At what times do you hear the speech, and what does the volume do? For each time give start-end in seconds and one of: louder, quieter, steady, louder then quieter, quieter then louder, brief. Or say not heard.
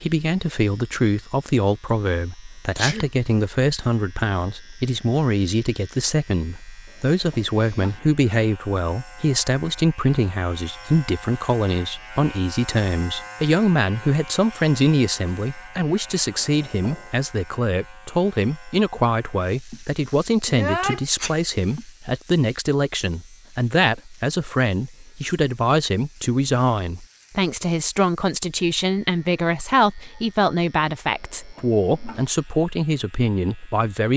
0.0-34.1 steady.